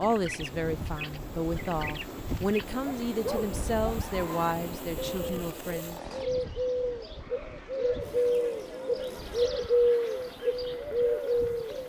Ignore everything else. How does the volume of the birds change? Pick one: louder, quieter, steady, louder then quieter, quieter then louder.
louder.